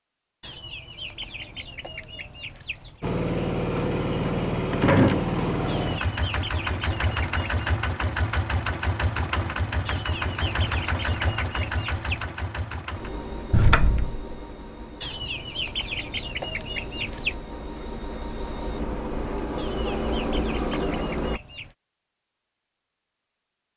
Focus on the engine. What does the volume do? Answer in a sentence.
The loudness of the engine goes down, then up.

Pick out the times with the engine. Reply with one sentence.
You can hear the engine from 3.0 to 21.4 s.